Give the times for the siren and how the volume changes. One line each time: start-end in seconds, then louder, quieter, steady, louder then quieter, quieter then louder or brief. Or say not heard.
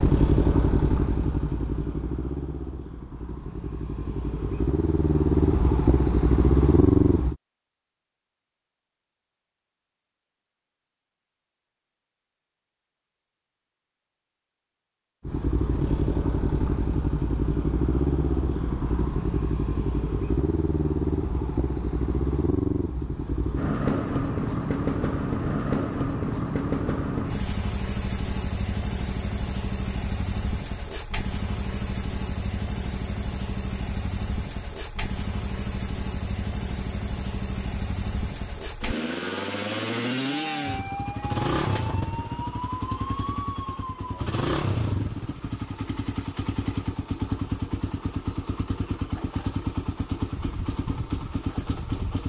40.2-44.4 steady.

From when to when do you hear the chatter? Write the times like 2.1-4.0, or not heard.
not heard.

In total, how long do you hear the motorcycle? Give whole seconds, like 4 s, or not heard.
44 s.